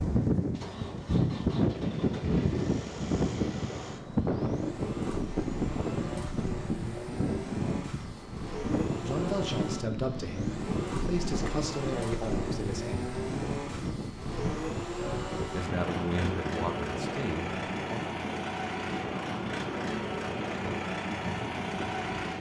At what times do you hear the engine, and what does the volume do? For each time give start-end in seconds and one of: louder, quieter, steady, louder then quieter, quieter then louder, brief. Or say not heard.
0.0-22.3 louder.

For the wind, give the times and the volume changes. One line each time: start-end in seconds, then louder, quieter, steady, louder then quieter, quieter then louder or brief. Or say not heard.
0.0-22.3 quieter.